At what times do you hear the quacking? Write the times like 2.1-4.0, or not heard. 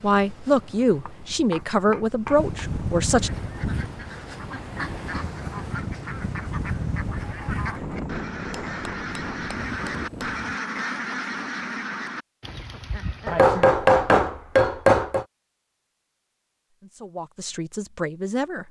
3.1-13.5.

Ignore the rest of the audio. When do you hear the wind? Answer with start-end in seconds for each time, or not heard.
0.0-10.6.